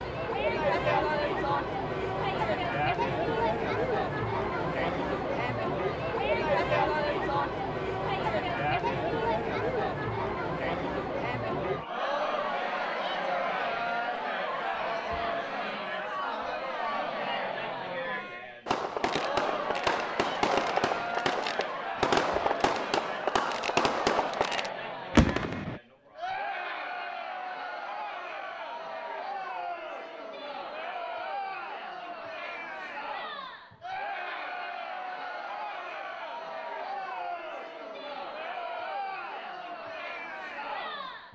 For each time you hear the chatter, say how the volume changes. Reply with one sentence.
The chatter can be heard from 0.0 to 41.3 s, getting quieter.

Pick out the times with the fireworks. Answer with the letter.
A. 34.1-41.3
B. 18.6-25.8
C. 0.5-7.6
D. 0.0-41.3
B.